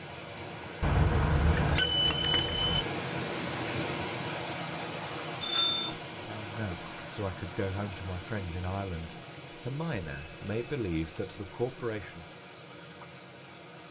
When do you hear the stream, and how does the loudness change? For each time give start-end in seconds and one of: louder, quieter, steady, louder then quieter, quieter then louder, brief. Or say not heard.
0.0-13.8 quieter.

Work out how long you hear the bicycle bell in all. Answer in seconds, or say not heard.
3 s.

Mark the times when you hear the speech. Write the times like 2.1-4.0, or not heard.
6.1-12.4.